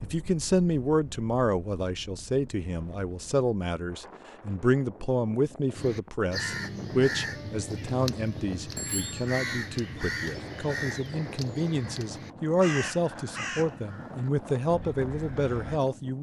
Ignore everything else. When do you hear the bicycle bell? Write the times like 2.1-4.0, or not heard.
8.8-9.3.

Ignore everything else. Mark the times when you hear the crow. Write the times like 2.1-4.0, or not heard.
5.8-15.8.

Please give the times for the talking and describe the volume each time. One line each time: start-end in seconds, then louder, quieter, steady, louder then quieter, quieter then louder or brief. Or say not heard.
0.0-16.1 steady.